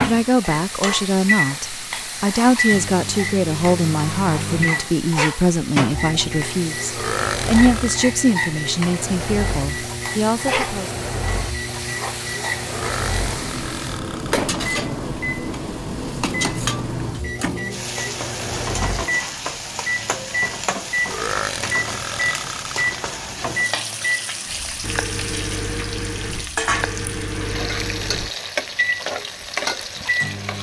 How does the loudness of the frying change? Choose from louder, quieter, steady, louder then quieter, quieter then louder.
steady.